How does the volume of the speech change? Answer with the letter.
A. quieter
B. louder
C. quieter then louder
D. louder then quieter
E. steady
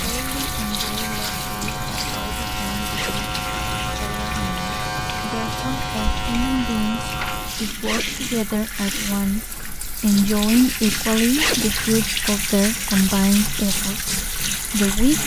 B.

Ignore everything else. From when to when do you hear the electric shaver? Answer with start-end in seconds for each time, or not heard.
0.0-7.7.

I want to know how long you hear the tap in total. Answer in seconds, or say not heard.
15 s.